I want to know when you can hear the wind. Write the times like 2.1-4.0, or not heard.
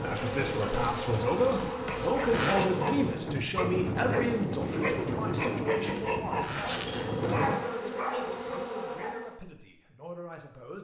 0.0-7.6.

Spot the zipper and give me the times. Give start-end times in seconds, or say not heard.
1.9-2.7, 6.0-7.1.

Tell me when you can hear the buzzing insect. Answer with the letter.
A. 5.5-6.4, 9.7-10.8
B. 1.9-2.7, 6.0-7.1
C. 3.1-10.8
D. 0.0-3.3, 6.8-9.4
D.